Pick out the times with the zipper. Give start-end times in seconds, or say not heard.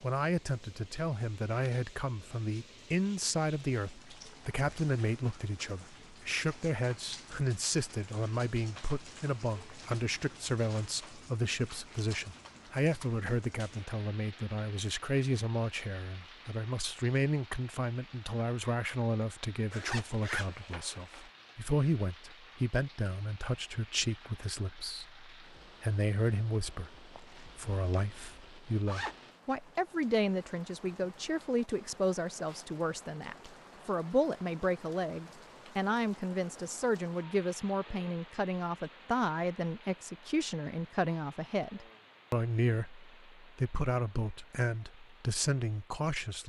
19.7-21.3, 27.1-29.1.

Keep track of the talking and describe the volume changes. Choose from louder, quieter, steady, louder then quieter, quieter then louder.
steady.